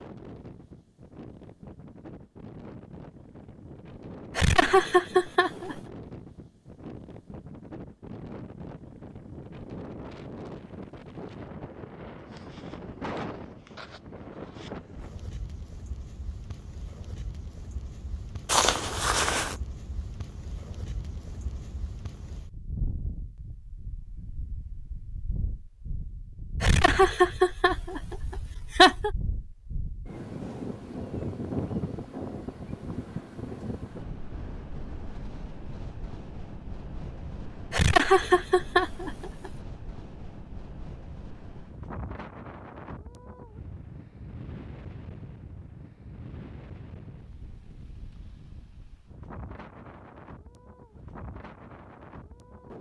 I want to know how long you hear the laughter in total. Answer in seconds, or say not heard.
6 s.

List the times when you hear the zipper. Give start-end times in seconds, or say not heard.
18.4-19.6.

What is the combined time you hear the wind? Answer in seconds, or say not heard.
53 s.